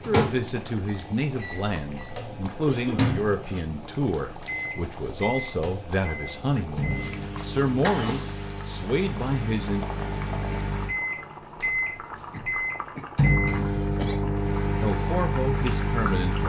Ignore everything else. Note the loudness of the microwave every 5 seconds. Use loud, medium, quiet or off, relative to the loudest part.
loud, medium, loud, loud.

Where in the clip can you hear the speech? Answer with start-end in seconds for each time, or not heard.
0.0-9.8, 14.8-16.4.